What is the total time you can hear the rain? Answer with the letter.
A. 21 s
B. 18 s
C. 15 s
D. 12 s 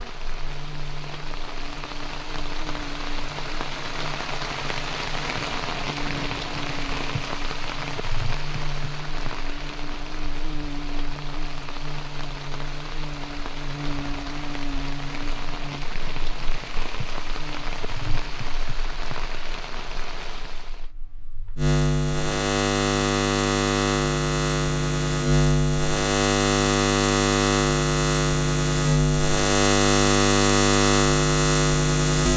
A.